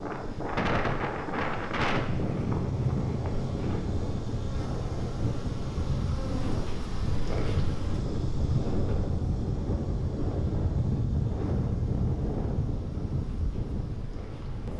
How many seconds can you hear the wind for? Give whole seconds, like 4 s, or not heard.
15 s.